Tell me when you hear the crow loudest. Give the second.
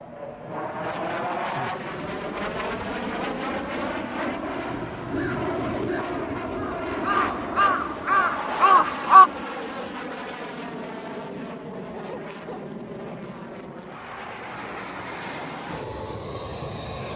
9 s.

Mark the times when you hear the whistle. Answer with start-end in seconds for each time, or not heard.
not heard.